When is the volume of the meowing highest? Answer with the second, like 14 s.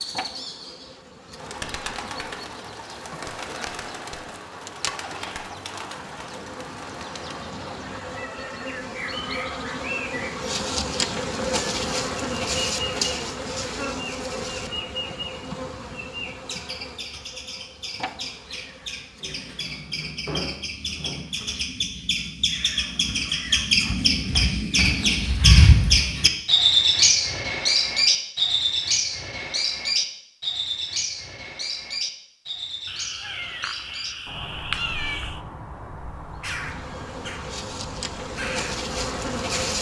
35 s.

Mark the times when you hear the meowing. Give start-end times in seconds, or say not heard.
32.9-35.4.